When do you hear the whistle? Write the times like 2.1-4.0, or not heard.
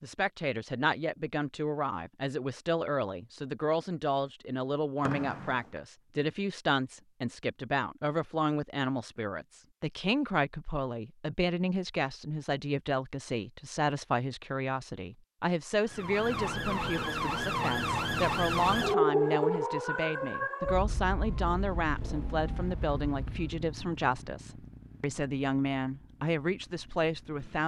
5.0-5.8.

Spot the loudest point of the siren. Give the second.
19 s.